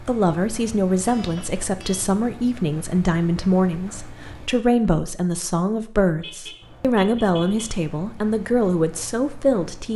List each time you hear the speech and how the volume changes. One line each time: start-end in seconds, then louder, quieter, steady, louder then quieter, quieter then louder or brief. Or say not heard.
0.0-9.9 steady.